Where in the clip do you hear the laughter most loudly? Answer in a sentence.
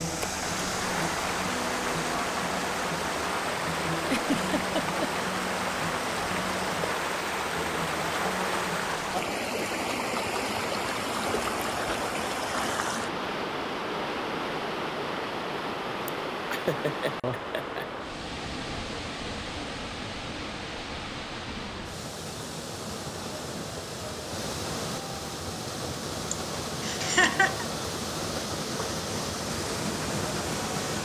The loudest moment of the laughter is at 27 seconds.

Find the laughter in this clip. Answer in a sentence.
You can hear the laughter from 4.0 to 5.1 s, from 16.1 to 17.9 s and from 26.3 to 27.6 s.